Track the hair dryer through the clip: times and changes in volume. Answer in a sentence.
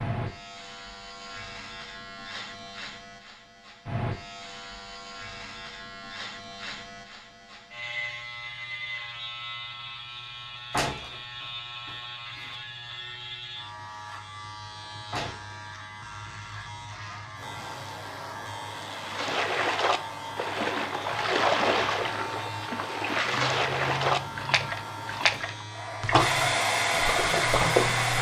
The hair dryer can be heard from 17.3 to 28.1 s, getting louder.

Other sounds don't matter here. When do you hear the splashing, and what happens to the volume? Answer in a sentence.
The splashing can be heard from 18.9 to 28.1 s, at a steady volume.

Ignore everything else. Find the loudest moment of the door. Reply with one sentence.
The volume of the door peaks at 11 seconds.